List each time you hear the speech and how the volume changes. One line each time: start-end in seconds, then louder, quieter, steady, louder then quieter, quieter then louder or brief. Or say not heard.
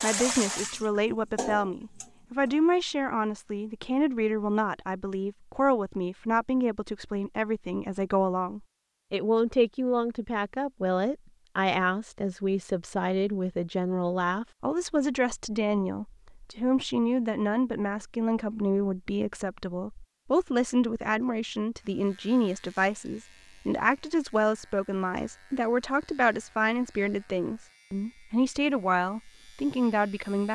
0.0-30.5 steady.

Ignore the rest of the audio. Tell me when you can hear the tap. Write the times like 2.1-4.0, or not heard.
0.0-2.6.